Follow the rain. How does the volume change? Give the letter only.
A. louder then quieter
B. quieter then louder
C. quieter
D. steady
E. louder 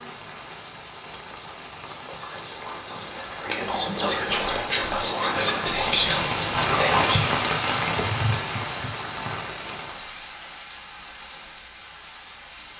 A.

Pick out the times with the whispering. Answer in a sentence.
The whispering can be heard from 1.9 to 7.2 s.